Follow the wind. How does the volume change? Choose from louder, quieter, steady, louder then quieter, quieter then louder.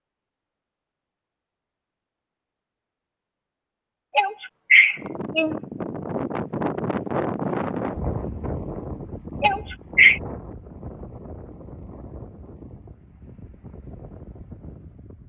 quieter.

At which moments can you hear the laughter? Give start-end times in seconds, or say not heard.
4.2-5.5, 9.4-10.2.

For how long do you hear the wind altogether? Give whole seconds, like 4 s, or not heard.
10 s.